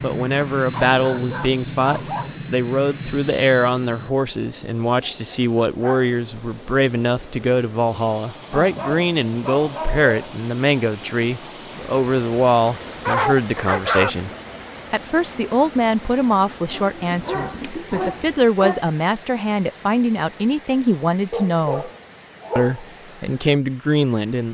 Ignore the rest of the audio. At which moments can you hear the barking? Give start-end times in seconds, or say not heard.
0.6-2.4, 5.0-6.1, 8.5-10.3, 13.1-14.1, 16.7-18.8, 21.3-22.8.